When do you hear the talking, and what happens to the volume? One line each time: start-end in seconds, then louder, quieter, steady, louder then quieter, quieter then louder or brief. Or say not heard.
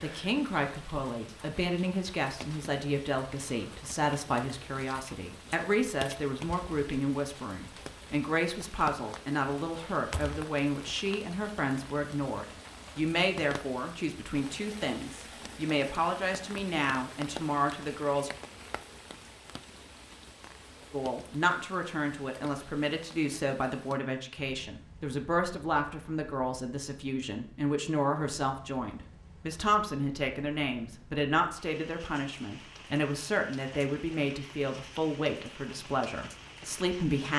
0.0-18.3 steady
20.9-37.3 steady.